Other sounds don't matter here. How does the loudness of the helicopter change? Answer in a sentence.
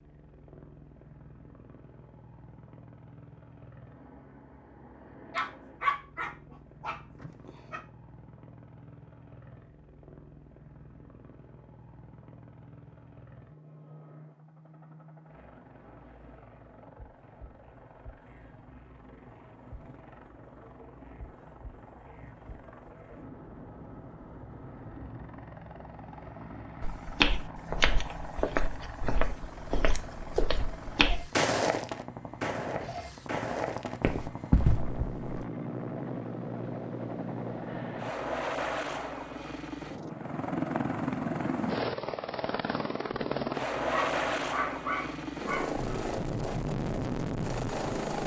The volume of the helicopter goes up.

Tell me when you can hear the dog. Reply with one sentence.
You can hear the dog from 5.3 to 7.8 s and from 43.9 to 46.2 s.